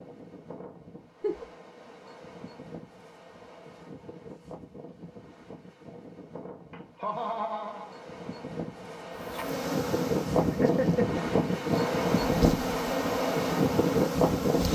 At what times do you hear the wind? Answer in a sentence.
You can hear the wind from 0.0 to 14.7 s.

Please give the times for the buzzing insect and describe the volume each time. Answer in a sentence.
The buzzing insect can be heard from 9.2 to 14.7 s, getting quieter then louder.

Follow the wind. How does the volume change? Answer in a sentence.
The volume of the wind goes up.